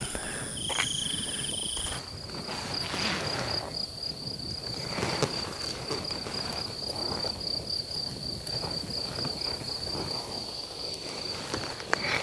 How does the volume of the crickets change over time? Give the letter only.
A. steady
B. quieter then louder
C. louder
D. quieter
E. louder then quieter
A.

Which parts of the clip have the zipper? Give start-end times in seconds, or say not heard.
2.6-4.2.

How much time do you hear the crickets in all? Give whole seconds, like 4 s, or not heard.
12 s.